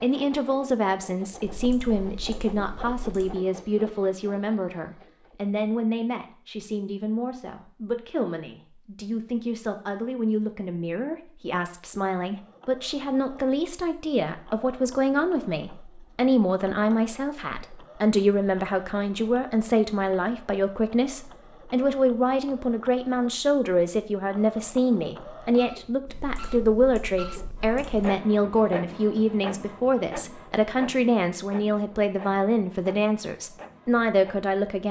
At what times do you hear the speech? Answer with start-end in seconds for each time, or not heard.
0.0-34.8.